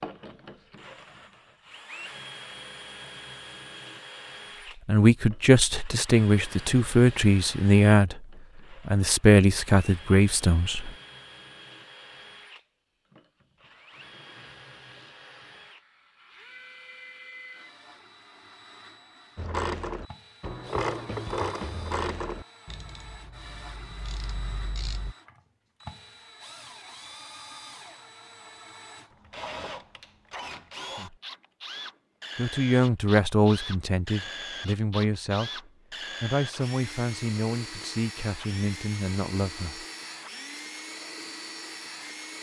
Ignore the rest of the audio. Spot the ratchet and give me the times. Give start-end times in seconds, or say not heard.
19.4-25.1.